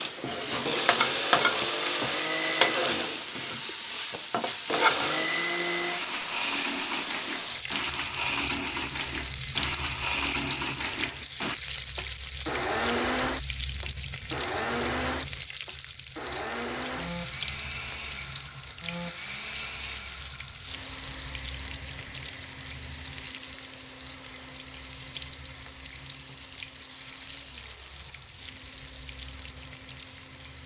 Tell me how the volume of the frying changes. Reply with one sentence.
The loudness of the frying goes down.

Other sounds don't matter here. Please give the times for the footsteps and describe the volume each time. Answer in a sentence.
You can't hear the footsteps here.